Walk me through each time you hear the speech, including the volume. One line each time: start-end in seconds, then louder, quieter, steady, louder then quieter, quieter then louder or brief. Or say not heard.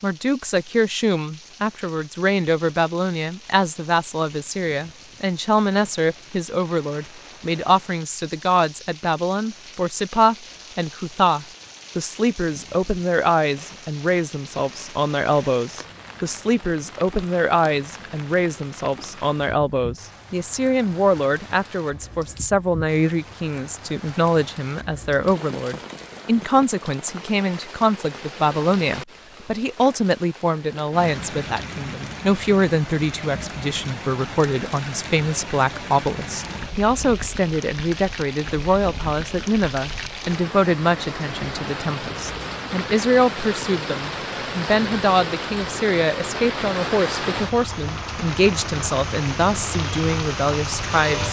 0.0-51.2 steady.